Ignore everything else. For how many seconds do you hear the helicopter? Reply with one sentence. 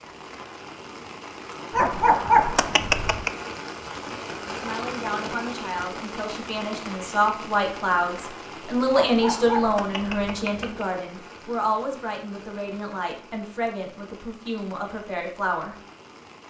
The helicopter can't be heard in this clip.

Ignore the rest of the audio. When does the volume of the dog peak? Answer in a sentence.
The loudest moment of the dog is at 2 seconds.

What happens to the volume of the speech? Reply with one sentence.
The loudness of the speech goes up, then down.